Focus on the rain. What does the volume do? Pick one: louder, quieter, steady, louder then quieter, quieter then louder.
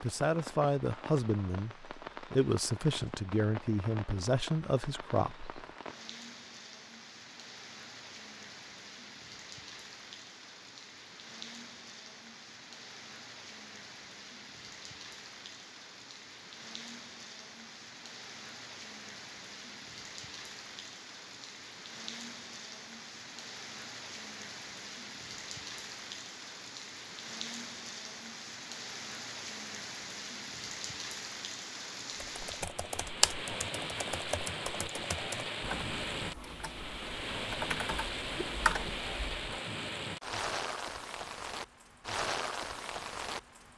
louder.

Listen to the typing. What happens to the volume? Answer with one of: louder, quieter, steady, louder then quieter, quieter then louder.
quieter then louder.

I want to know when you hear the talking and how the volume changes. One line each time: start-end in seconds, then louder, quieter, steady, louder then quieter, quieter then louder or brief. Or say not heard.
0.0-5.5 quieter then louder.